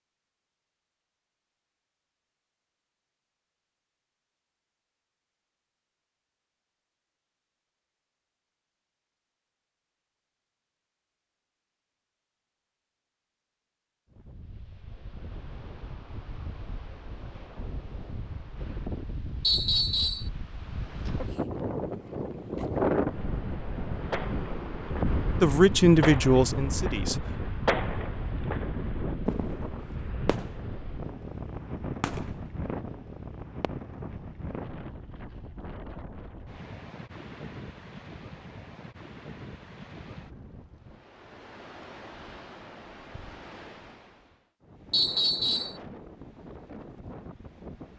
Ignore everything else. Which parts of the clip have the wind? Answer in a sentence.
The wind can be heard from 14.1 to 47.9 s.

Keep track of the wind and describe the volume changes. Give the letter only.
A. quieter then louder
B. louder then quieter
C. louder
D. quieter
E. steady
B.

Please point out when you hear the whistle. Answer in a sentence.
The whistle can be heard from 19.4 to 20.3 s and from 44.9 to 45.8 s.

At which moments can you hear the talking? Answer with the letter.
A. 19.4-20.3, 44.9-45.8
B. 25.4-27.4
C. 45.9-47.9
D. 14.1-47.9
B.